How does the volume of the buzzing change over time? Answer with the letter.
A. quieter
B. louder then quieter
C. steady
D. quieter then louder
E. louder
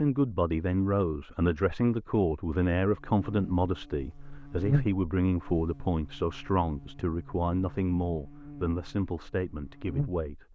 D.